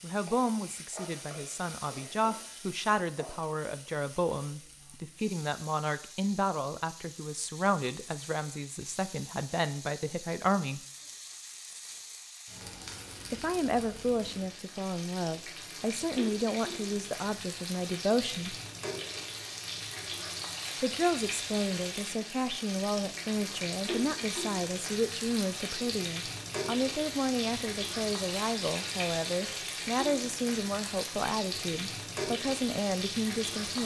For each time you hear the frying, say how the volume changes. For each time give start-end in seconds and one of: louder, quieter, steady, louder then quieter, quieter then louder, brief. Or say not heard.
0.0-33.8 louder.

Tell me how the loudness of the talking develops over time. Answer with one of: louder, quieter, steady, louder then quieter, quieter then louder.
steady.